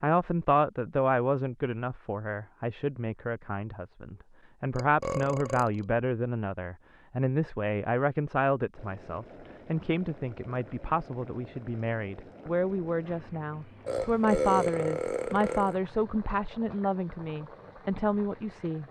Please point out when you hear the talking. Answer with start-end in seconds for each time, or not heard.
0.0-18.8.